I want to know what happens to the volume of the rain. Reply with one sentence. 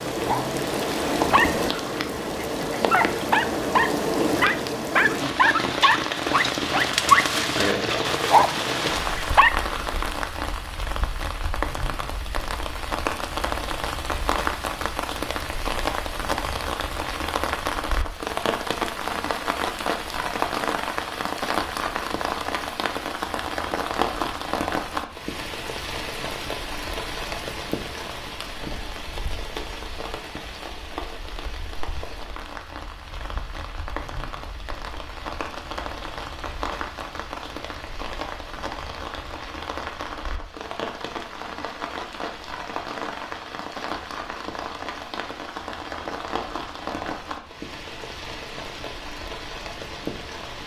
The loudness of the rain goes down.